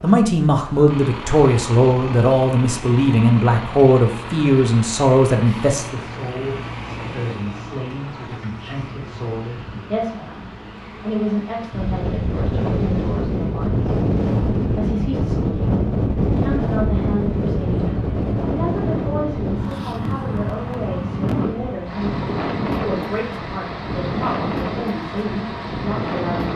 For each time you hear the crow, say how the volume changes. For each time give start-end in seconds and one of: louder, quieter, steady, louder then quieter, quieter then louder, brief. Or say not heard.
not heard.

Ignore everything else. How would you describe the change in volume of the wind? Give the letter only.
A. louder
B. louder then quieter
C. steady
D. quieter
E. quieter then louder
D.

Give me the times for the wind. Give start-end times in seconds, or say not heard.
11.7-26.5.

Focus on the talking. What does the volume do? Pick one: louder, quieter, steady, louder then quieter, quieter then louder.
quieter.